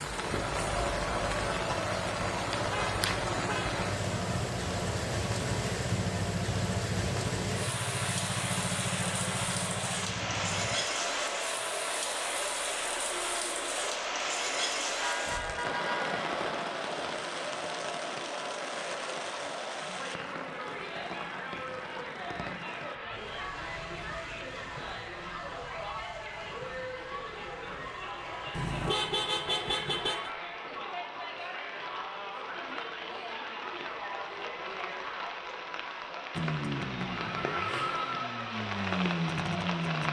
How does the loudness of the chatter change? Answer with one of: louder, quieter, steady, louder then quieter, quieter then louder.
steady.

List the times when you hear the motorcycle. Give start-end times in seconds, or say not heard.
0.0-10.8, 36.4-40.0.